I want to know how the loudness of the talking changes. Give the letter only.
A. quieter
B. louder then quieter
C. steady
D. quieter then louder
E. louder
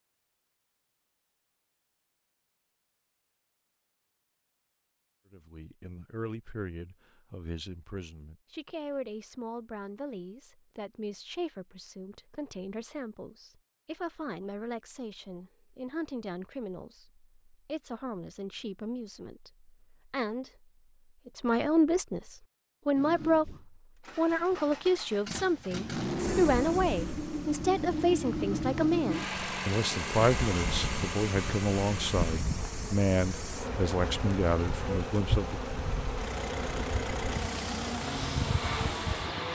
E.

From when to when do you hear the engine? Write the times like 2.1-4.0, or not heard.
22.9-39.5.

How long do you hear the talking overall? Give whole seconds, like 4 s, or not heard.
30 s.